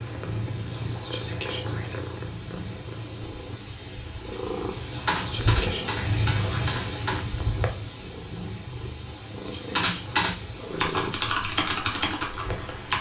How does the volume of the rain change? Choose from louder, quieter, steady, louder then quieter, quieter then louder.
louder then quieter.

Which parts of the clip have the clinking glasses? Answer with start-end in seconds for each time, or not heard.
not heard.